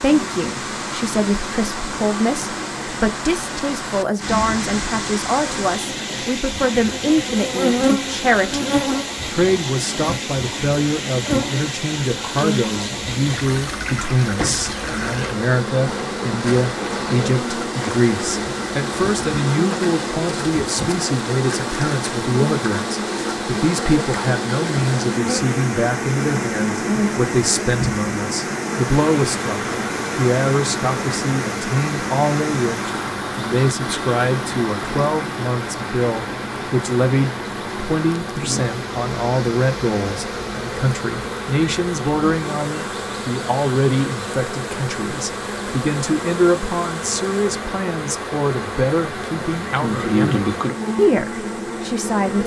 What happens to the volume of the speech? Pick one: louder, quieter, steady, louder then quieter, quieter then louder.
steady.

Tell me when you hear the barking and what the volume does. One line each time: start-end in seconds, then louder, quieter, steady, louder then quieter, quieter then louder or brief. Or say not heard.
not heard.